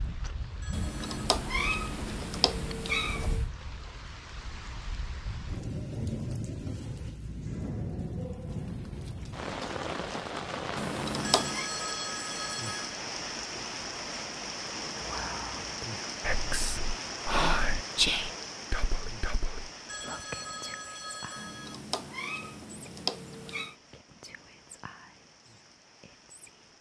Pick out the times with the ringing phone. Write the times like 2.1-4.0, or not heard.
0.6-1.3, 11.2-13.0, 19.9-21.8.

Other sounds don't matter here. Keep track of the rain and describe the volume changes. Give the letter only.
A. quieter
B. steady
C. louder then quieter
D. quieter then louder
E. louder
C.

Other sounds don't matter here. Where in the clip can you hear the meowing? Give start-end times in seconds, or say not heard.
0.7-3.5, 10.8-11.7, 21.4-23.8.